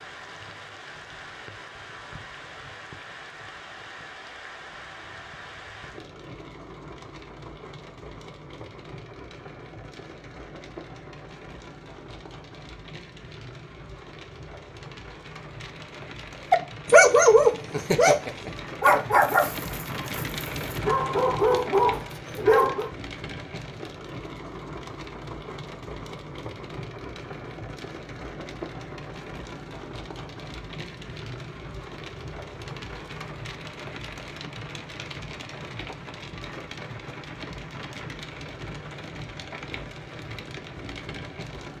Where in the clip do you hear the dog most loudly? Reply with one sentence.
The loudest moment of the dog is at 17 seconds.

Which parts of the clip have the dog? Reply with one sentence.
You can hear the dog from 16.5 to 22.9 s.